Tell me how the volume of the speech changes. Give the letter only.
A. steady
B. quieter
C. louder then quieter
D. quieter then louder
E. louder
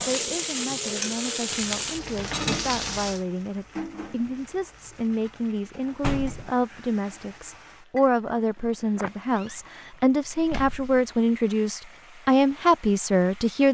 E.